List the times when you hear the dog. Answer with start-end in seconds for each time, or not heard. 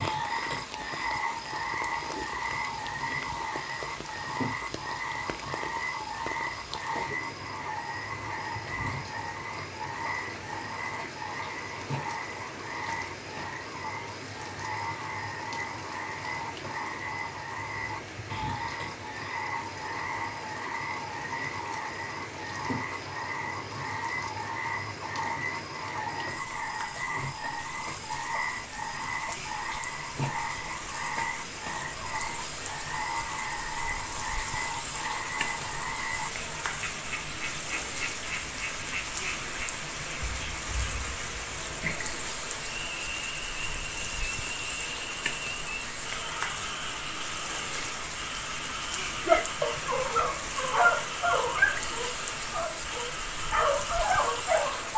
49.2-54.9.